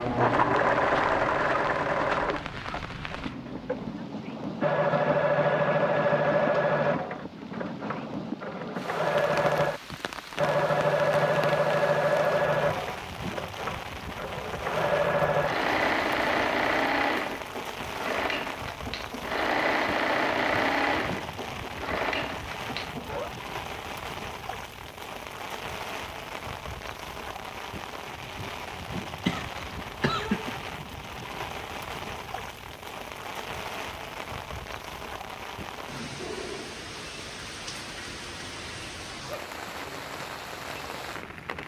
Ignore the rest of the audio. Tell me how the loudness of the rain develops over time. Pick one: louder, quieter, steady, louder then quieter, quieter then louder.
steady.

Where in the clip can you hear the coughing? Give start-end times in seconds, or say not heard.
29.2-30.5.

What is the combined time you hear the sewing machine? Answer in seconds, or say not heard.
23 s.